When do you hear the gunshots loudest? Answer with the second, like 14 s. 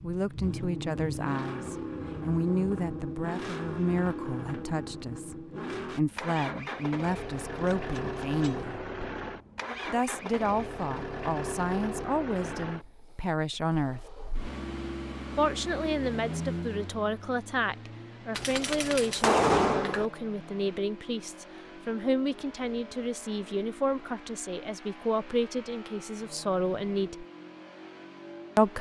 19 s.